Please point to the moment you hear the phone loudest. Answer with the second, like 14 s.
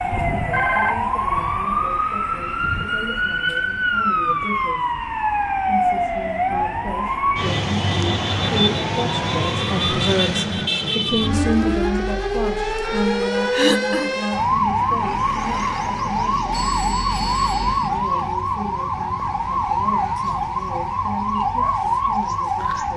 1 s.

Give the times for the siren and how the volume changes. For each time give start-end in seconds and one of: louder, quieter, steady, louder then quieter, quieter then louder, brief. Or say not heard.
0.0-22.9 steady.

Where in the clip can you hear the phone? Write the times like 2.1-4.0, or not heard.
0.5-1.0, 16.5-17.9.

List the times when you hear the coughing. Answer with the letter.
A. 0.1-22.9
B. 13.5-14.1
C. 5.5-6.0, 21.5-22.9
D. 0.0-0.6
B.